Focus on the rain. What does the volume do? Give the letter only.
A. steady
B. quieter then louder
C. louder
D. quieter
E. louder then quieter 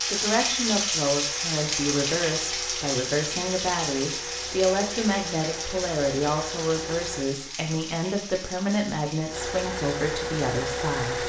D.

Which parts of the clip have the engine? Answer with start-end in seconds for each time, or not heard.
0.0-7.3, 9.2-11.2.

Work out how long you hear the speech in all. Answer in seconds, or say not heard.
11 s.